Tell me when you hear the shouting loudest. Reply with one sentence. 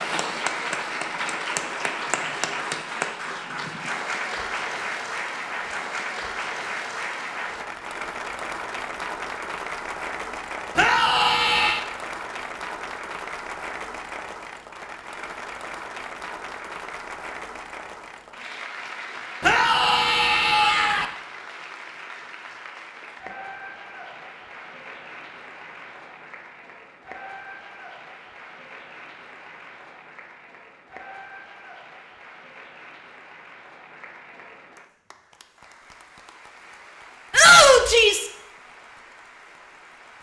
The volume of the shouting peaks at 38 seconds.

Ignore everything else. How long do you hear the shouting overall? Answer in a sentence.
The shouting can be heard for 4 seconds in total.